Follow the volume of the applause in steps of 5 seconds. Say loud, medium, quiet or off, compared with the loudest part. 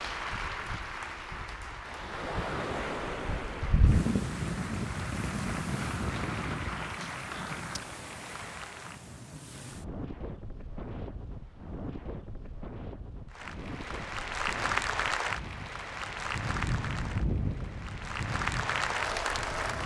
medium, medium, loud, loud.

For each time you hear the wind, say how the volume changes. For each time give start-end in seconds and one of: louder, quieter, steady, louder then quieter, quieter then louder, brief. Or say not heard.
0.0-19.8 quieter then louder.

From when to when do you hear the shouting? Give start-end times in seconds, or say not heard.
not heard.